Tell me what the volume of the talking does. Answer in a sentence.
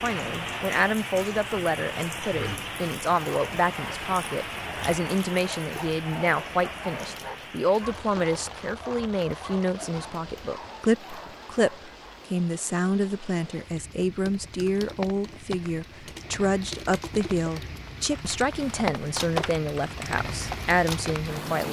The volume of the talking stays about the same.